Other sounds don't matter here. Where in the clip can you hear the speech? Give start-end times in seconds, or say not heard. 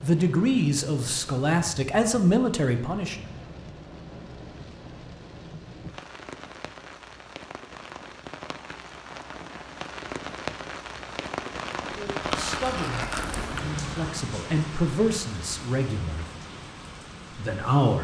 0.0-3.2, 11.9-16.2, 17.3-17.9.